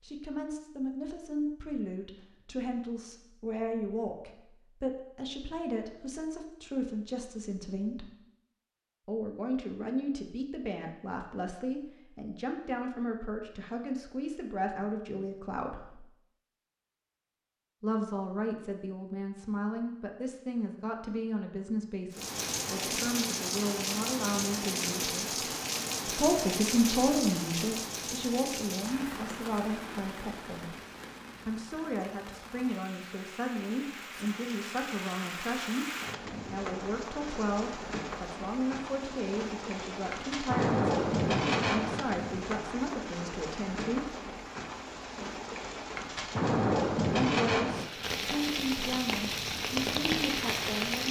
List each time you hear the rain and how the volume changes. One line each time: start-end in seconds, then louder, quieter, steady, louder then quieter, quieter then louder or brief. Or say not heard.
22.1-51.0 quieter then louder.